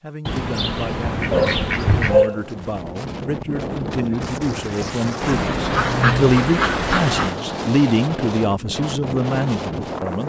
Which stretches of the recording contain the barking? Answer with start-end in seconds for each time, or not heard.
1.3-2.5.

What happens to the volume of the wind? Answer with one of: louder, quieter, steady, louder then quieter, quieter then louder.
steady.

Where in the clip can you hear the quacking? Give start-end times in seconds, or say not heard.
0.2-2.3, 5.2-7.3.